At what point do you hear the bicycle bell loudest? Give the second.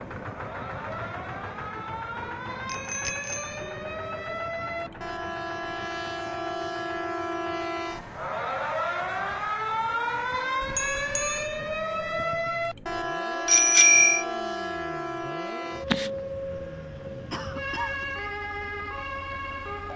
14 s.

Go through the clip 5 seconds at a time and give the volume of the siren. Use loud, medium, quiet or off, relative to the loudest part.
medium, loud, loud, loud.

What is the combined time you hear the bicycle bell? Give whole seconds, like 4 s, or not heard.
3 s.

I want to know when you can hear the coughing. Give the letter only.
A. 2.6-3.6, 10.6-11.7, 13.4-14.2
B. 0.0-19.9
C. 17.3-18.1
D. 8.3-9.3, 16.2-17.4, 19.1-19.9
C.